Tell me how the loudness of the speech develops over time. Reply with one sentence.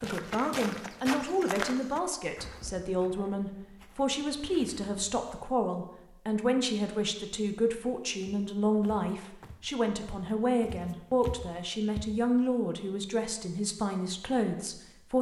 The volume of the speech stays about the same.